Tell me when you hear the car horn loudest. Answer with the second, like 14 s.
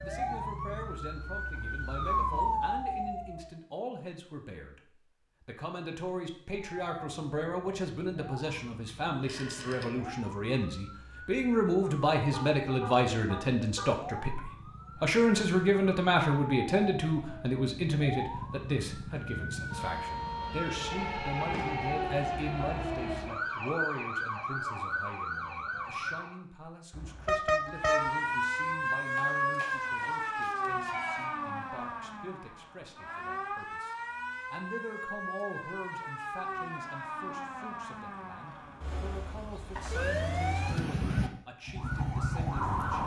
27 s.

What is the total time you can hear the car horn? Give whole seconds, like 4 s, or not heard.
3 s.